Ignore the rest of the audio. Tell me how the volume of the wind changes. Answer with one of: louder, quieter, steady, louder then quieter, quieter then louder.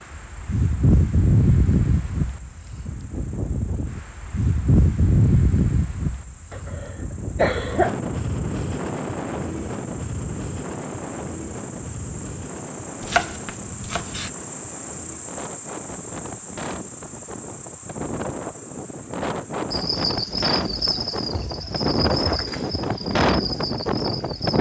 quieter then louder.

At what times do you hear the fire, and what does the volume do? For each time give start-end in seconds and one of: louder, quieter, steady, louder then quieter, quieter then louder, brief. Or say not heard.
not heard.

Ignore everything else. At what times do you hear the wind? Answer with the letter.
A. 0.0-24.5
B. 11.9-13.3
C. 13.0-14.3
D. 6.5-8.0
A.